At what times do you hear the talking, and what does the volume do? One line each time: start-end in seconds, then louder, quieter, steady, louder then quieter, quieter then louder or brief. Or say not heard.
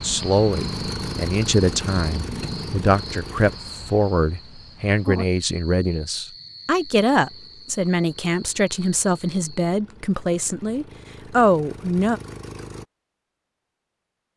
0.0-12.2 steady.